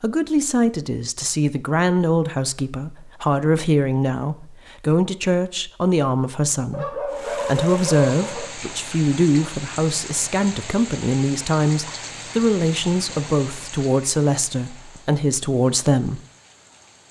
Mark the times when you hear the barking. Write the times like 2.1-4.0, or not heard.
6.7-8.6.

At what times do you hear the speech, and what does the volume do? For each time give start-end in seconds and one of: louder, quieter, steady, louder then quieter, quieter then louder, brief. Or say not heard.
0.0-16.2 steady.